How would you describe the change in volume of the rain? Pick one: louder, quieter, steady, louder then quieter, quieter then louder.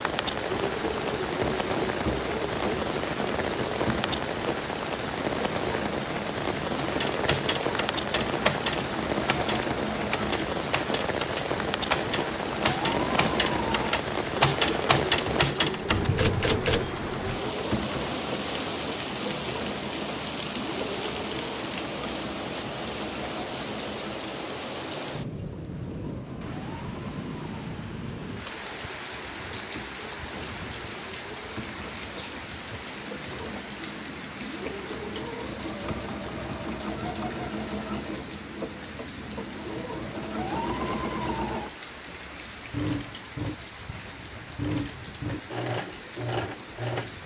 quieter.